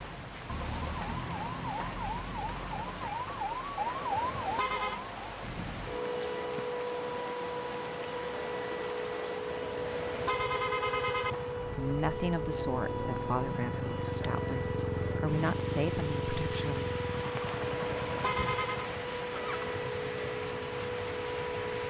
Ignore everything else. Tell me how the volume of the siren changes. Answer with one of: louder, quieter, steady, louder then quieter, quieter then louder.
steady.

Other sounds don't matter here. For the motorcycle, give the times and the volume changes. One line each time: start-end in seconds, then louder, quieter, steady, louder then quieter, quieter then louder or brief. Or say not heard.
10.3-21.8 louder then quieter.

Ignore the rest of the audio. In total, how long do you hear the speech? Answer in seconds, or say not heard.
5 s.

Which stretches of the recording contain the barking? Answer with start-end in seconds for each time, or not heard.
not heard.